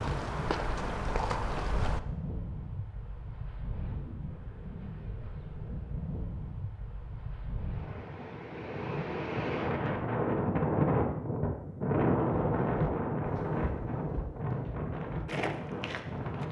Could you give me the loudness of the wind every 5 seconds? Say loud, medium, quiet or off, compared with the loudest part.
quiet, medium, loud, medium.